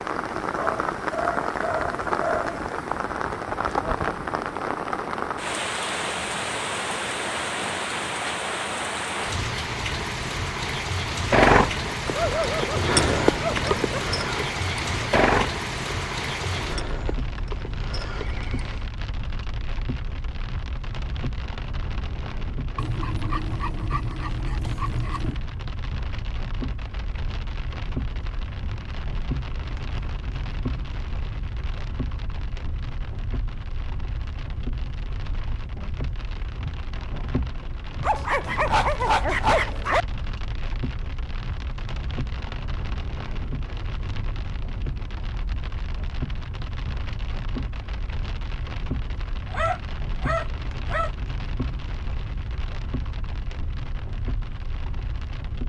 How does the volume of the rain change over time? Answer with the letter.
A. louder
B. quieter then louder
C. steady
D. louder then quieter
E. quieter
E.